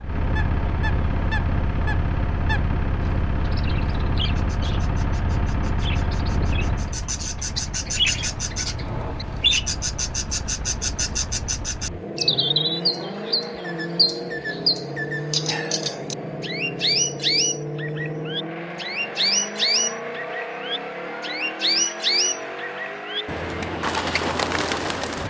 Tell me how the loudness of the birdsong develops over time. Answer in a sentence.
The volume of the birdsong goes up.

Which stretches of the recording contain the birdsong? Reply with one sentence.
The birdsong can be heard from 0.0 to 25.2 s.